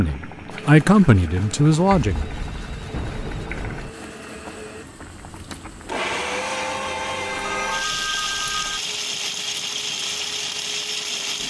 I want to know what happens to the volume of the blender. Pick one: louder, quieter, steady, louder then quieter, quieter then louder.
louder.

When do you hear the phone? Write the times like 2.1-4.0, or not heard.
2.0-3.9, 7.2-8.8.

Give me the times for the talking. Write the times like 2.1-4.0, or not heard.
0.0-2.3.